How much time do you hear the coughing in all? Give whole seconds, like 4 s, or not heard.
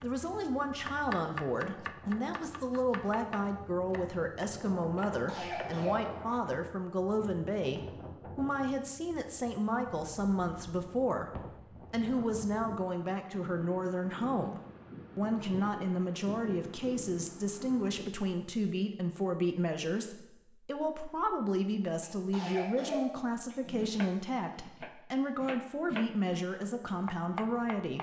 3 s.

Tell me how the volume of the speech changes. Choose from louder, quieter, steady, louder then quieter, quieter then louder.
steady.